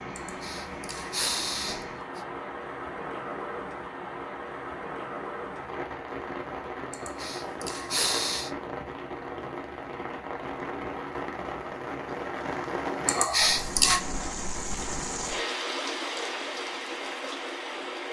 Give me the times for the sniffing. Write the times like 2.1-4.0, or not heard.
0.1-2.2, 6.9-8.5, 13.1-14.0.